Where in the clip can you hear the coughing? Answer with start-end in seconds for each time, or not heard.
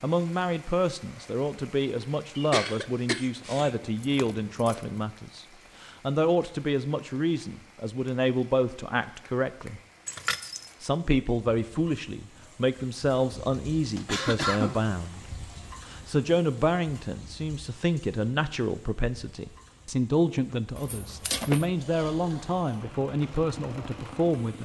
2.4-3.8, 13.9-15.2.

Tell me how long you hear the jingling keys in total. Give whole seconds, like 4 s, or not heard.
3 s.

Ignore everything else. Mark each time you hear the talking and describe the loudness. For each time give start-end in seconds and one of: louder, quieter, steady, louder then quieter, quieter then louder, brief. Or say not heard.
0.0-9.8 steady
10.8-24.6 steady.